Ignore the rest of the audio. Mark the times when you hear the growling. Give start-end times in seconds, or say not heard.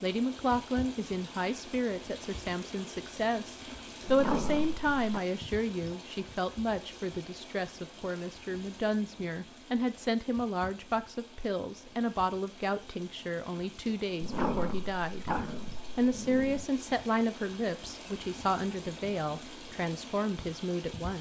4.0-5.2, 14.2-16.6.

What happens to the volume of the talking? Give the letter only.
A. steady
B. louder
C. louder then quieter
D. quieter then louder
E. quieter
A.